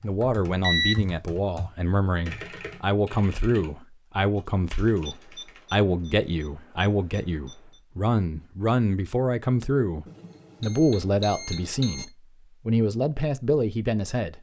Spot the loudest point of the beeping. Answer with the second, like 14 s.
1 s.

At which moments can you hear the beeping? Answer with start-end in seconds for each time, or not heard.
0.6-1.1, 5.0-7.8, 10.1-12.1.